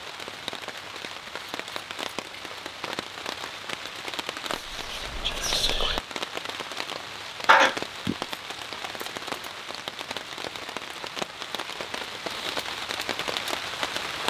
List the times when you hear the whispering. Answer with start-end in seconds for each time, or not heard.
4.5-6.0.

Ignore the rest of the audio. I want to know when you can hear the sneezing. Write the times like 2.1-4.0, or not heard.
7.5-8.2.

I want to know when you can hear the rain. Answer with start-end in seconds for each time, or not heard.
0.0-14.2.